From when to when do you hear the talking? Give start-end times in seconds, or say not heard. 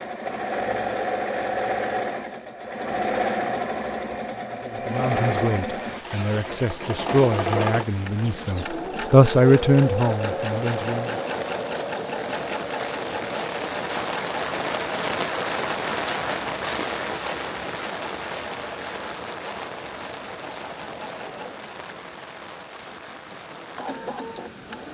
4.7-11.2.